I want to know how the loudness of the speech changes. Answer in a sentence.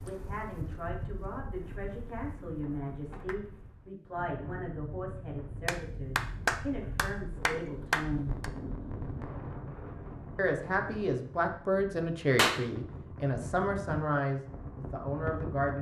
The volume of the speech goes up.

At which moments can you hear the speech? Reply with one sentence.
The speech can be heard from 0.0 to 8.3 s and from 10.3 to 15.7 s.